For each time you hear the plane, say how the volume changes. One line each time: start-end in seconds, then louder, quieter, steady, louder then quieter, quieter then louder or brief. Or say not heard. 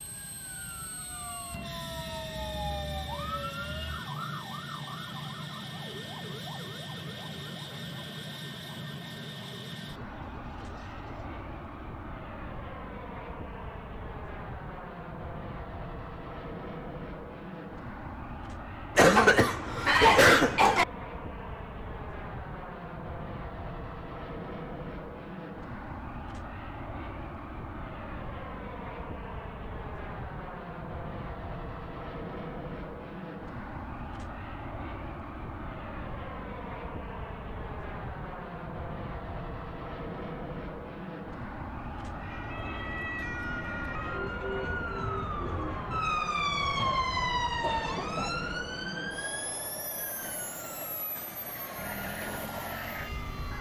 0.0-53.5 steady.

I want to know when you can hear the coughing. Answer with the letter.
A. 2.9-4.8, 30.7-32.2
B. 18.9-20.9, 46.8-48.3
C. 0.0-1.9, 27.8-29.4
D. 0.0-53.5
B.